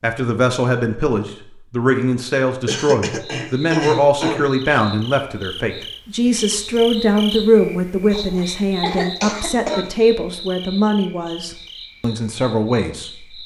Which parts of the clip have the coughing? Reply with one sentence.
You can hear the coughing from 2.6 to 4.5 s and from 8.1 to 9.9 s.